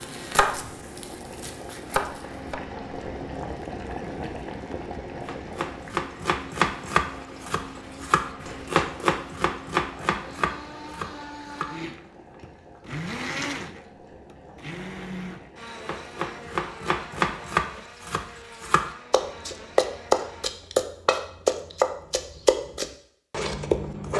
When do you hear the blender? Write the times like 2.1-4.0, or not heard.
0.0-20.5.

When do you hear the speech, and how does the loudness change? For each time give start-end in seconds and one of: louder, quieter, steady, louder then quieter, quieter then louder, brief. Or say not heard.
not heard.